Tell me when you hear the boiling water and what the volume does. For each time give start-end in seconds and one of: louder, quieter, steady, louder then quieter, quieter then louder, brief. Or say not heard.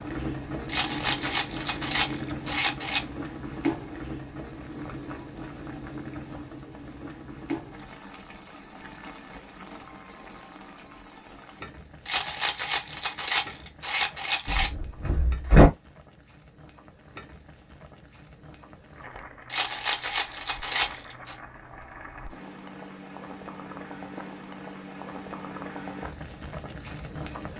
0.0-27.5 quieter then louder.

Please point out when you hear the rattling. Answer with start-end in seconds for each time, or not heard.
0.7-3.0, 12.1-14.7, 19.4-21.4.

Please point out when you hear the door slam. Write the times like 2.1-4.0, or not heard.
14.4-15.7.